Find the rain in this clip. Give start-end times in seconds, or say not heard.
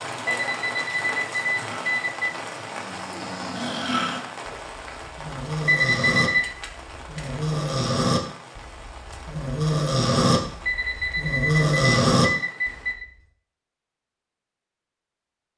0.0-12.9.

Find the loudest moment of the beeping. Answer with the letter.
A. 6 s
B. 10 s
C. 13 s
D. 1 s
A.